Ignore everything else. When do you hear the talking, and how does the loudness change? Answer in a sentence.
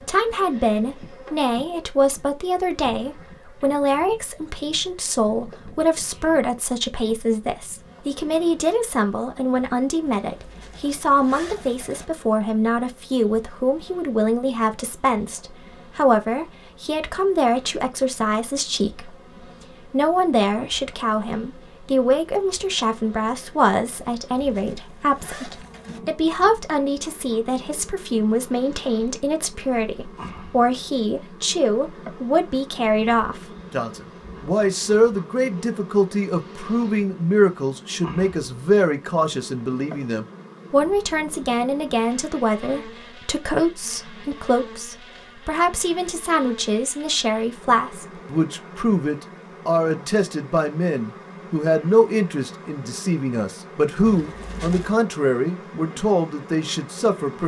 The talking can be heard from 0.0 to 57.4 s, at a steady volume.